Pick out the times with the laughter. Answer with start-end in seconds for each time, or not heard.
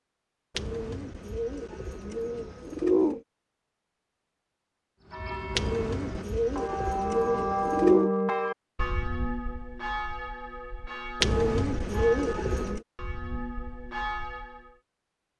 not heard.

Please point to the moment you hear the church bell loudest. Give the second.
8 s.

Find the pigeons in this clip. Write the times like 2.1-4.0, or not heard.
0.6-3.2, 5.5-8.1, 11.2-12.8.